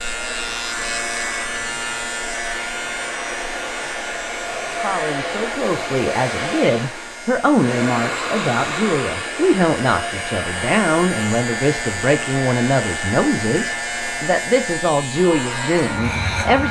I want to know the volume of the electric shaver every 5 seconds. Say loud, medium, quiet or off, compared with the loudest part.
loud, medium, loud, loud.